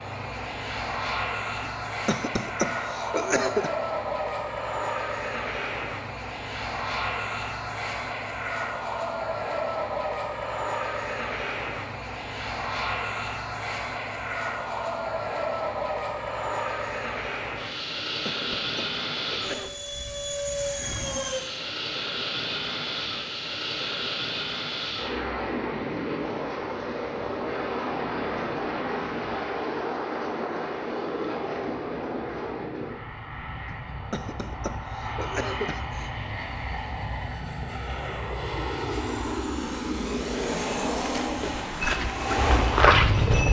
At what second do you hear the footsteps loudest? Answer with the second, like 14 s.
43 s.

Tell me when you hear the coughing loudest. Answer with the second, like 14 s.
3 s.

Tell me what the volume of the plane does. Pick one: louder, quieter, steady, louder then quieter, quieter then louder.
steady.